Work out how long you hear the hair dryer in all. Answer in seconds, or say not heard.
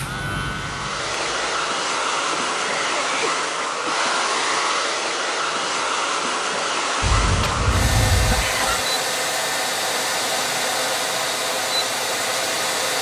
13 s.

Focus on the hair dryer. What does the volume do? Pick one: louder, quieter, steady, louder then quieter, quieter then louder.
steady.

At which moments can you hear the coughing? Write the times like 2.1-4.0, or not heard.
2.0-4.5, 7.0-8.8.